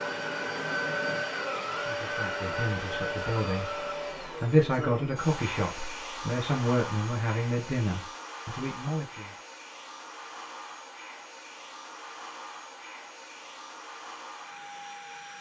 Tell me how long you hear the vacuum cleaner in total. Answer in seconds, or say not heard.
15 s.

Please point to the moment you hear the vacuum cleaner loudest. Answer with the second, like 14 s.
1 s.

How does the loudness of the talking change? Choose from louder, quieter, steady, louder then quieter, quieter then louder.
louder then quieter.